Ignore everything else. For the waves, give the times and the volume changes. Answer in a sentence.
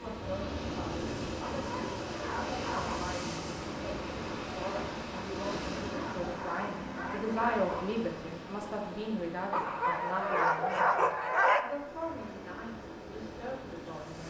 You can hear the waves from 0.0 to 14.2 s, getting quieter.